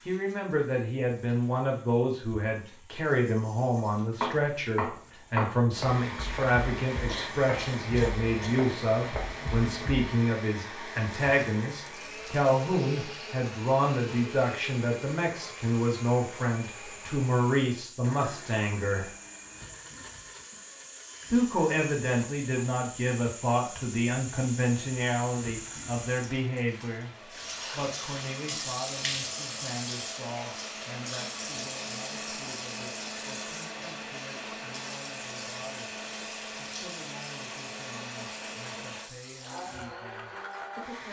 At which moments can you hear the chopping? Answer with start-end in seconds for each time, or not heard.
3.8-10.1.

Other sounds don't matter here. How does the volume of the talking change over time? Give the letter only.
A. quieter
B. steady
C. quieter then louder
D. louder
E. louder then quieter
A.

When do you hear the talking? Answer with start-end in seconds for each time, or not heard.
0.1-19.1, 21.3-27.1, 27.7-41.0.